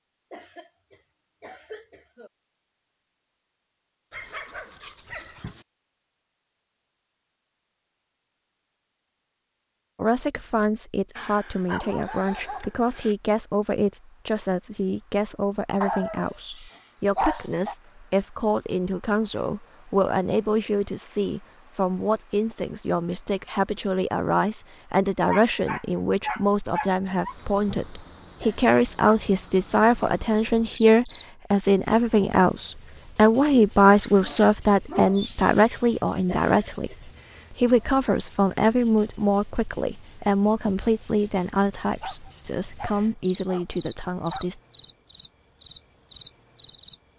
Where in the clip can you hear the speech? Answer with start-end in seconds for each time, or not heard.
9.9-44.6.